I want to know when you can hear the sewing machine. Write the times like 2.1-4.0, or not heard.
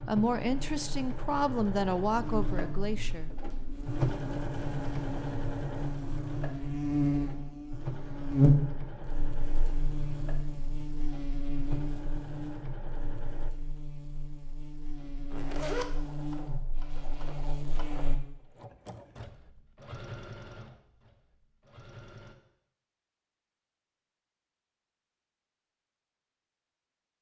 0.0-13.6, 14.9-22.4.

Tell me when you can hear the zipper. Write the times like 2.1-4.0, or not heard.
15.3-15.9.